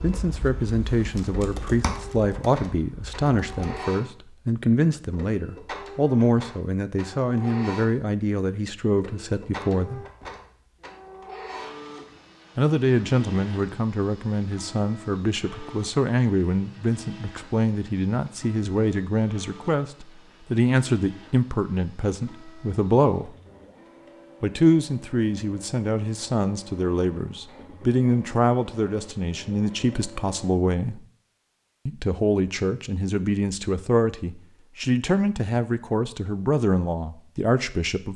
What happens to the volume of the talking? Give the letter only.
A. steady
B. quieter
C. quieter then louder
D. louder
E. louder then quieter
A.